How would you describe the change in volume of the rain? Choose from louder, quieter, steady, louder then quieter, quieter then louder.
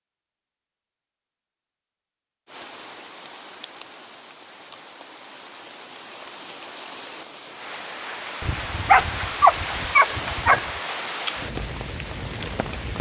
louder.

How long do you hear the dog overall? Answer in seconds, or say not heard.
2 s.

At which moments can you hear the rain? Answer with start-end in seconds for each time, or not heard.
2.5-12.9.